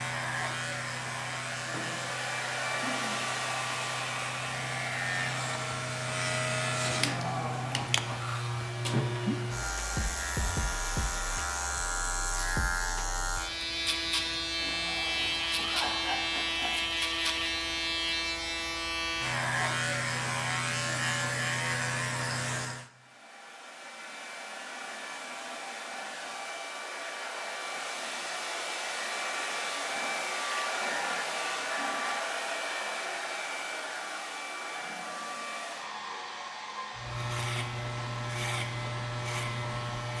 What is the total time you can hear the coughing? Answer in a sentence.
The coughing can be heard for 5 seconds in total.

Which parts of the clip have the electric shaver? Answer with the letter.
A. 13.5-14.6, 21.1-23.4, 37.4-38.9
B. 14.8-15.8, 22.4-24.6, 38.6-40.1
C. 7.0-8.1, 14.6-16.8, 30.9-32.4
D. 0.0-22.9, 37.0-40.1
D.